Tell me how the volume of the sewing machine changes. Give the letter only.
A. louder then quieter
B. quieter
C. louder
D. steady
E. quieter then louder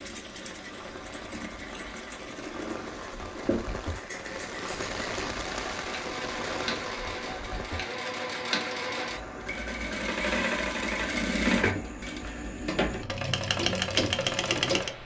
C.